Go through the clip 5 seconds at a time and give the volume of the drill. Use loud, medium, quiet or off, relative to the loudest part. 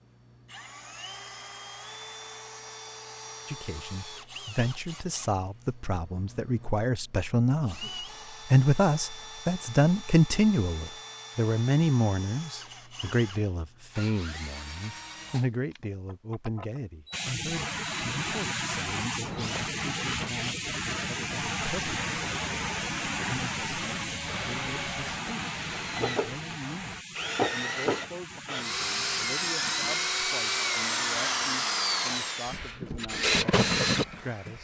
quiet, quiet, quiet, quiet, quiet, loud, loud.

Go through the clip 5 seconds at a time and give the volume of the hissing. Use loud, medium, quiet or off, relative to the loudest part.
off, off, off, loud, loud, medium, medium.